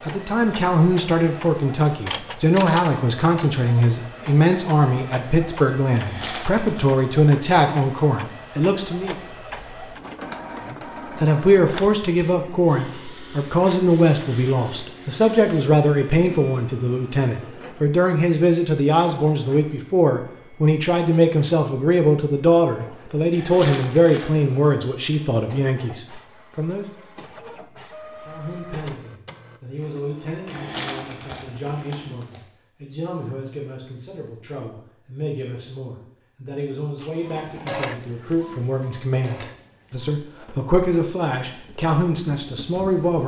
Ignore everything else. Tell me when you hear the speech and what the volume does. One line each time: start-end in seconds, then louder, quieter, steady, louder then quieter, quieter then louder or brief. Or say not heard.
0.1-9.2 steady
10.7-26.9 steady
28.2-43.2 louder.